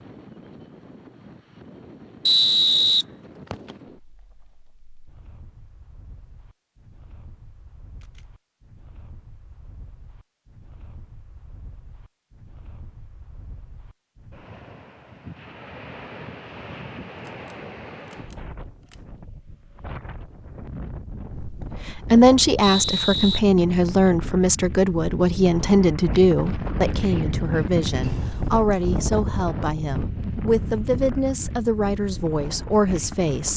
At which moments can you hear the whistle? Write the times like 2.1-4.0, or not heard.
2.2-3.8, 22.6-24.1.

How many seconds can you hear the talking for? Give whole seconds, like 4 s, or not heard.
12 s.